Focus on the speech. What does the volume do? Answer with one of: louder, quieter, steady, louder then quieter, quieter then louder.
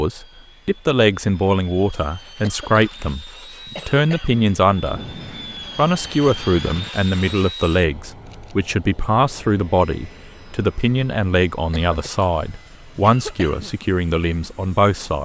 steady.